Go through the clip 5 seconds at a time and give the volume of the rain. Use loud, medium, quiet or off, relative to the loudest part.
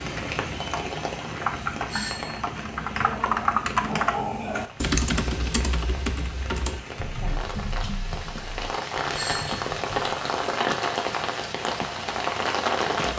medium, medium, loud.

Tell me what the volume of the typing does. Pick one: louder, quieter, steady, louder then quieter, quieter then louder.
louder then quieter.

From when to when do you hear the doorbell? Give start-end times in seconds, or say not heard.
1.9-2.4, 9.2-9.7.